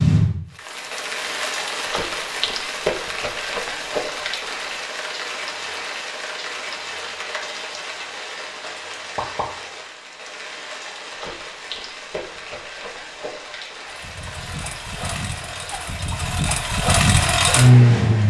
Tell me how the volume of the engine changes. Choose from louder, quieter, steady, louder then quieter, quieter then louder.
louder.